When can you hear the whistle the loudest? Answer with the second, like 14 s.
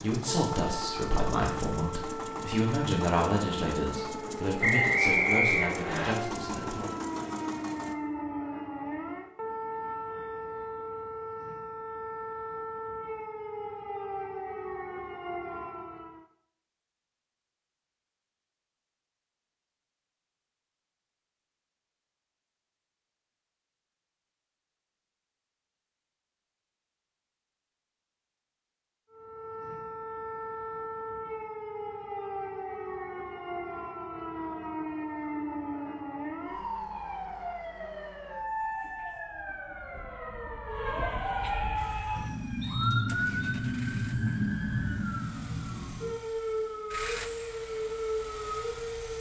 5 s.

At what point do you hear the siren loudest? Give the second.
43 s.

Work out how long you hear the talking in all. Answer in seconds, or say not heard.
7 s.